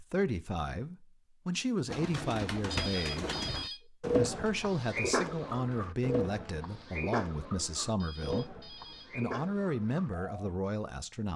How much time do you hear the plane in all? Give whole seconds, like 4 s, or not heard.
not heard.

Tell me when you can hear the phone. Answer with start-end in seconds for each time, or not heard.
2.7-3.8, 8.0-9.1.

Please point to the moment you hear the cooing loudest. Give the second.
4 s.